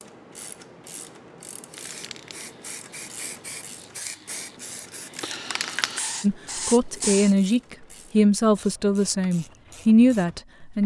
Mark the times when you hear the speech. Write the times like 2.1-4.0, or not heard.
6.2-10.8.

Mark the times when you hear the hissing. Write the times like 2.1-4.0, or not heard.
1.7-7.3.